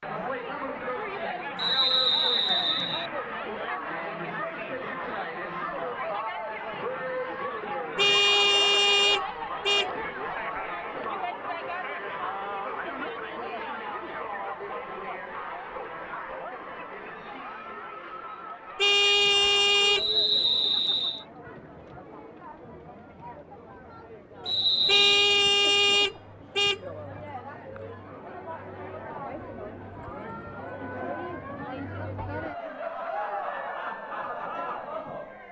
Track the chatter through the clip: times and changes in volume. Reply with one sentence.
You can hear the chatter from 0.0 to 35.4 s, getting quieter then louder.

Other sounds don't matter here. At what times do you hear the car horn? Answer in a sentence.
You can hear the car horn from 8.0 to 9.9 s, from 18.8 to 20.1 s and from 24.9 to 26.8 s.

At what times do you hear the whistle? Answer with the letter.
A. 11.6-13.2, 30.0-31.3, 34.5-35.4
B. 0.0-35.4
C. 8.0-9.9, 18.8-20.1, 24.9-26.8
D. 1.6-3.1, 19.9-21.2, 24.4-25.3
D.